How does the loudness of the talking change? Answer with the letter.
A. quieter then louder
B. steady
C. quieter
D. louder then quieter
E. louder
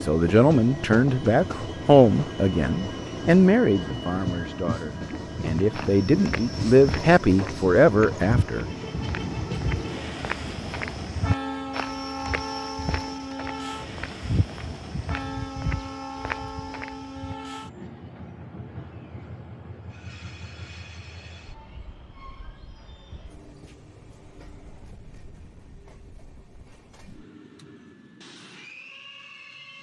A.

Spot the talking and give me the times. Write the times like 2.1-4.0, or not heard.
0.0-8.7.